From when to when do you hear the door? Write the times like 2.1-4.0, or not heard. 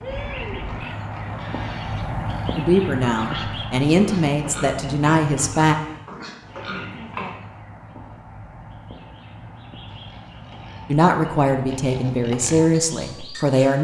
0.1-0.9.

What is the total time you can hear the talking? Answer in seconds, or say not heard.
6 s.